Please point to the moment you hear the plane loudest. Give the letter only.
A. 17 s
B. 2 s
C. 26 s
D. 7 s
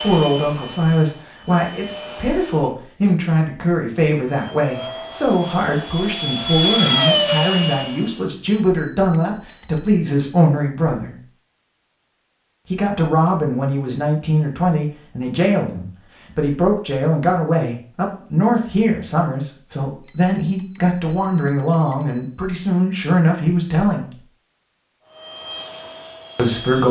D.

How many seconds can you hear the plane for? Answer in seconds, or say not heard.
8 s.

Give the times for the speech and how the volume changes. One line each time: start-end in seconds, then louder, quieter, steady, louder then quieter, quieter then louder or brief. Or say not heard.
0.0-11.2 steady
12.7-24.1 steady
26.4-26.8 brief.